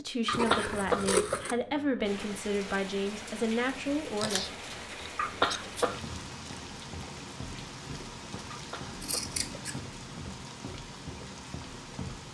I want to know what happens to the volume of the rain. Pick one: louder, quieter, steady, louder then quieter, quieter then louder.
steady.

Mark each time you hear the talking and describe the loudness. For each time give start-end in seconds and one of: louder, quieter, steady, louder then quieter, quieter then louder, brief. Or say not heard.
0.0-4.5 steady.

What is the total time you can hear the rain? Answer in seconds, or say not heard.
10 s.